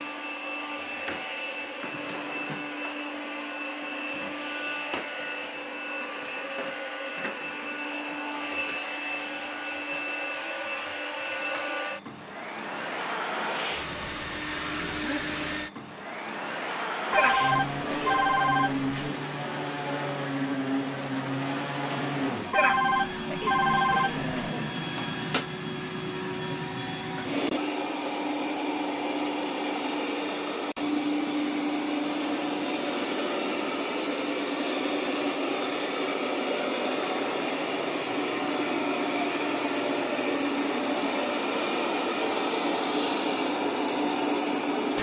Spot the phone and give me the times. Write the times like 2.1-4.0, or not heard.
17.1-18.9, 22.5-24.2.